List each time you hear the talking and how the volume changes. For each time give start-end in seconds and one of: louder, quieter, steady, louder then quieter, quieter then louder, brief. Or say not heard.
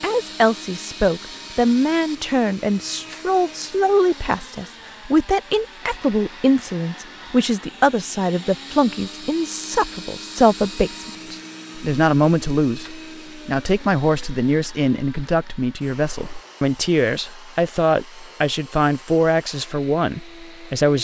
0.0-20.9 steady.